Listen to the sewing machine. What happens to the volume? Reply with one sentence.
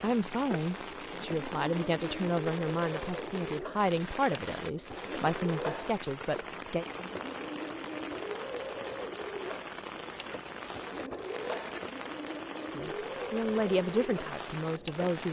The volume of the sewing machine stays about the same.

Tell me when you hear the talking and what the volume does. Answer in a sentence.
You can hear the talking from 0.0 to 6.8 s, at a steady volume; and briefly from 12.8 to 15.2 s.